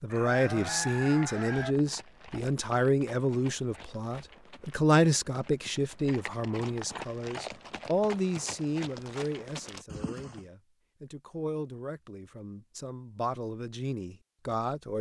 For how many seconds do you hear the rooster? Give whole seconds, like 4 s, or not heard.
2 s.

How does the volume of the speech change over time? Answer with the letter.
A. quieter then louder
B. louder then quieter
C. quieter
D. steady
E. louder
C.